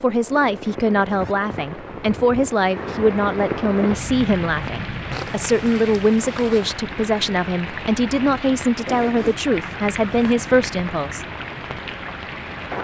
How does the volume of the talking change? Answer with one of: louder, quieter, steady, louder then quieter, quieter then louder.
steady.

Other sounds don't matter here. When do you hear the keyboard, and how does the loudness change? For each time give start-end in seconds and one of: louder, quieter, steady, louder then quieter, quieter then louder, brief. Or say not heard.
not heard.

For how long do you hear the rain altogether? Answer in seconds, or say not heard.
13 s.